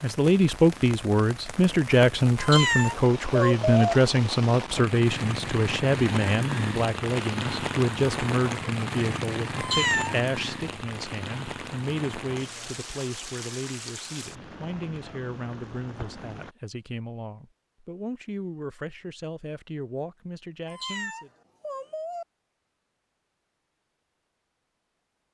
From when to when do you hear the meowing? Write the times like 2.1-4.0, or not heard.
2.4-4.0, 9.6-10.2, 20.6-22.2.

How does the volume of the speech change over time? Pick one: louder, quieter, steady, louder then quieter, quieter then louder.
quieter.